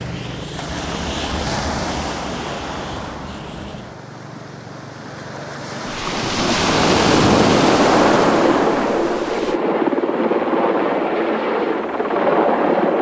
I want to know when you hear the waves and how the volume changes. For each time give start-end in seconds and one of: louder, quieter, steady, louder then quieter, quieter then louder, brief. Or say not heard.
0.0-9.6 quieter then louder.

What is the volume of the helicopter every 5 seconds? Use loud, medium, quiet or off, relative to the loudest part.
quiet, loud, loud.